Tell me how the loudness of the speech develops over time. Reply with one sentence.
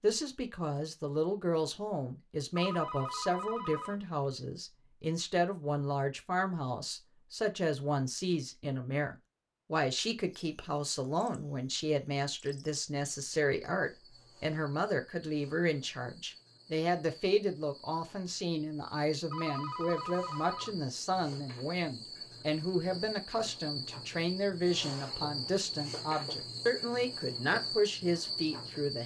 The volume of the speech stays about the same.